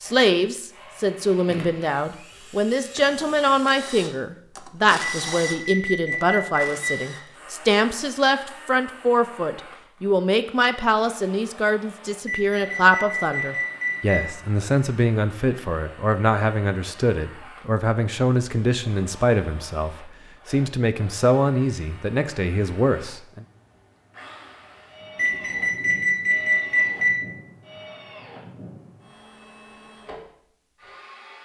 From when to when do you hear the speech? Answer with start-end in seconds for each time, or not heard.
0.0-23.4.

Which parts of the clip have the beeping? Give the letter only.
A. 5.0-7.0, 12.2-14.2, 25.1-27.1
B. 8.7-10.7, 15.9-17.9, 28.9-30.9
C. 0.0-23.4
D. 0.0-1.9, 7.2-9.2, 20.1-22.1
A.